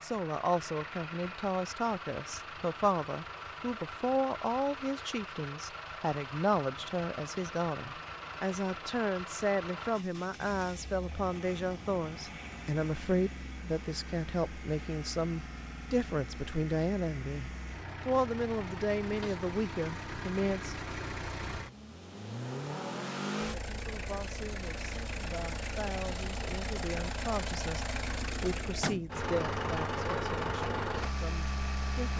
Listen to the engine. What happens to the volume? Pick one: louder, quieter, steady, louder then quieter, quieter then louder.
louder.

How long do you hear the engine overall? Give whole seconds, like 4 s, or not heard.
32 s.